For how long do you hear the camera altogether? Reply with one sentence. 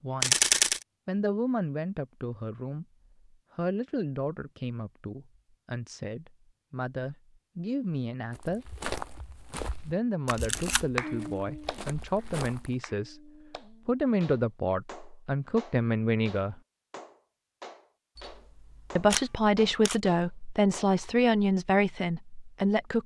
The camera can be heard for 2 seconds in total.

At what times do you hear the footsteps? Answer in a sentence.
The footsteps can be heard from 8.3 to 12.8 s.